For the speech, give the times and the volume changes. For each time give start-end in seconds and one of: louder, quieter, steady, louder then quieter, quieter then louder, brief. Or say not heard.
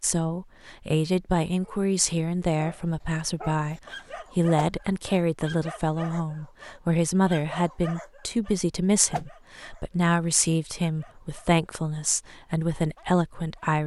0.0-13.8 steady.